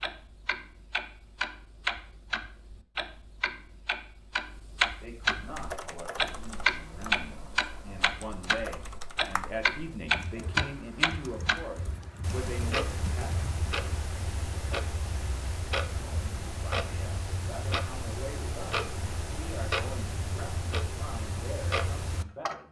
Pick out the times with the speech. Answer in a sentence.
The speech can be heard from 5.0 to 13.3 s and from 16.0 to 22.6 s.